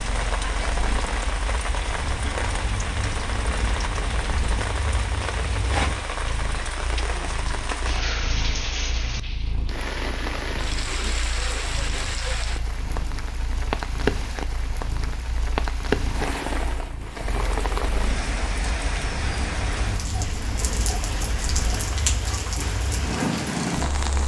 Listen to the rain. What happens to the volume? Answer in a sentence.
The volume of the rain stays about the same.